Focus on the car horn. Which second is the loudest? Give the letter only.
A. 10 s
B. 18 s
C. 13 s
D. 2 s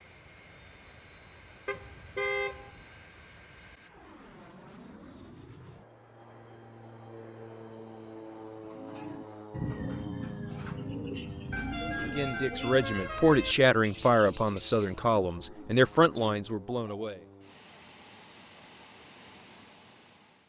D.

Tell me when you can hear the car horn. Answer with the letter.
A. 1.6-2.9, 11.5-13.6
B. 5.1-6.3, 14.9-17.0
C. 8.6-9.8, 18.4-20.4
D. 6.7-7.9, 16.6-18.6
A.